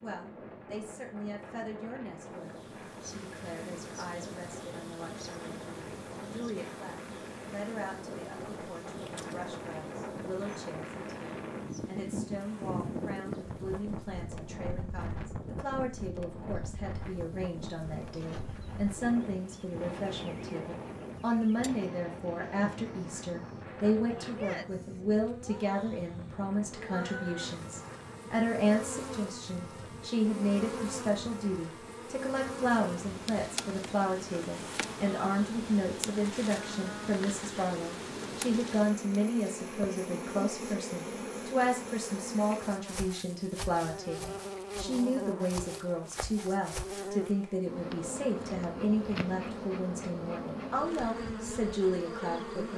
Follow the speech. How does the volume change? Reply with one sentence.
The loudness of the speech goes up.